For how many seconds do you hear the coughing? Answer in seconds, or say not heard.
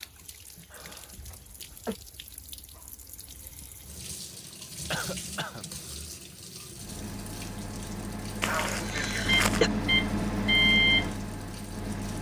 3 s.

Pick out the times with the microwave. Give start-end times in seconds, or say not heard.
6.8-12.1.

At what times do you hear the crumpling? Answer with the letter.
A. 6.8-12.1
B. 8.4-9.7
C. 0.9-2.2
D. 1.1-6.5
B.